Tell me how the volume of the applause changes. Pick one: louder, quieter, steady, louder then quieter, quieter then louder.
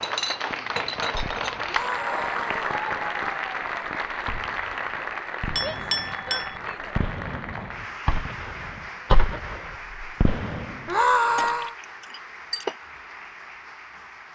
quieter.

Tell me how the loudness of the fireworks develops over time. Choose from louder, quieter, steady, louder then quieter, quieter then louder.
louder.